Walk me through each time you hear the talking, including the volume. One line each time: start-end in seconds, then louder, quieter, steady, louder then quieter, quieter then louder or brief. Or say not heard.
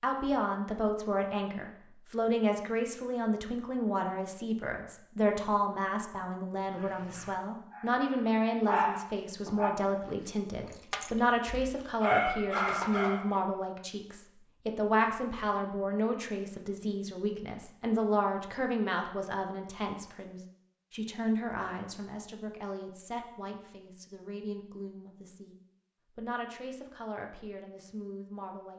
0.0-25.6 quieter
26.1-28.7 brief.